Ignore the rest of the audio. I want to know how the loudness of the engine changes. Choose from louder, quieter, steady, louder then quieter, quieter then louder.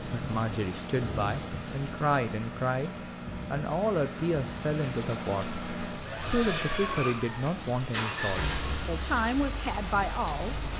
louder.